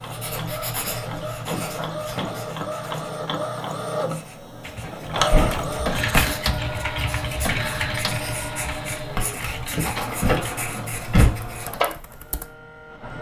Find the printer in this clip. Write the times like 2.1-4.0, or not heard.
0.0-13.1.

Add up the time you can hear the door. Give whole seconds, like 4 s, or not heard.
4 s.